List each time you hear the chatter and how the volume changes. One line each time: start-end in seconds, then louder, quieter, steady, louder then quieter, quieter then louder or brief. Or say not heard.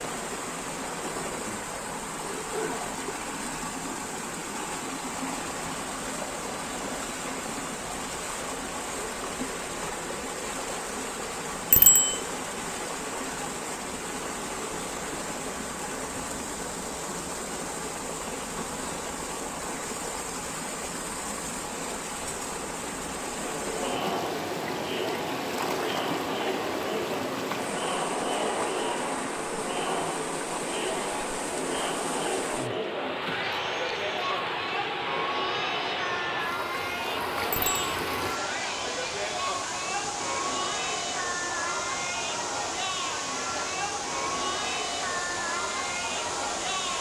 23.3-46.9 steady.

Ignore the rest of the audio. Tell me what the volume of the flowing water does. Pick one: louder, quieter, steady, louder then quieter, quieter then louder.
steady.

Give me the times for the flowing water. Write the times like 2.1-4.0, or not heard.
0.0-46.9.